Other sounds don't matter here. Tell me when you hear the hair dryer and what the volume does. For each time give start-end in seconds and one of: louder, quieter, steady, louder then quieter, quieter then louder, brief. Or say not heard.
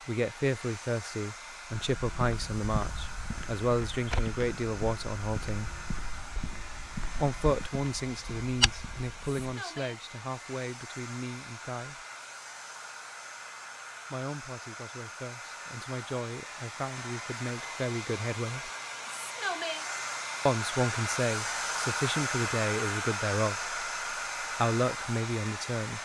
0.0-26.0 louder.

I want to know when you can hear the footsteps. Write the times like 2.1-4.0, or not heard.
1.8-9.3.